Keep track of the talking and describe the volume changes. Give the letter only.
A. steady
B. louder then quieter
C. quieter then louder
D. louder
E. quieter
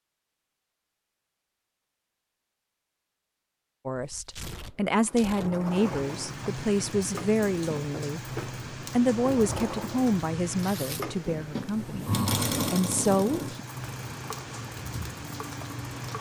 A.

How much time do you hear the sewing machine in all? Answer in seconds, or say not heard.
12 s.